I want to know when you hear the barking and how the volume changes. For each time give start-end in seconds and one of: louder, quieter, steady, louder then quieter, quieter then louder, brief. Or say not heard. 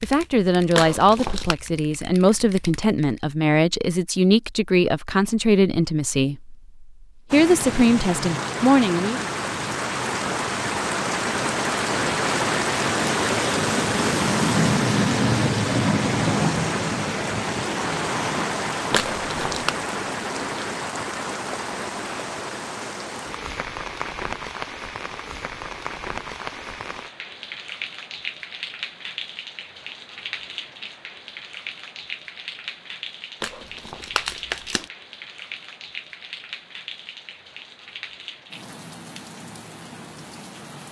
not heard.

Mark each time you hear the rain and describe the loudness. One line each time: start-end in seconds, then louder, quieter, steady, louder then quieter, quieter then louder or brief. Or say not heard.
7.3-40.8 quieter.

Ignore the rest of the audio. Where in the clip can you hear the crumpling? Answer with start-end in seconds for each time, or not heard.
0.8-1.6, 18.9-19.8, 33.4-34.9.